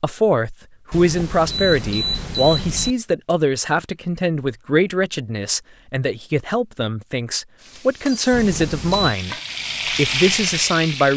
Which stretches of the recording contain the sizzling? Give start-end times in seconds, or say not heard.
7.5-11.1.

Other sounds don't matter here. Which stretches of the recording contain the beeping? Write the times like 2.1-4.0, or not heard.
0.9-3.0, 8.3-9.2.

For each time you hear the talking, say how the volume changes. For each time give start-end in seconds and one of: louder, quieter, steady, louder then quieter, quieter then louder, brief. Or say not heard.
0.0-11.1 steady.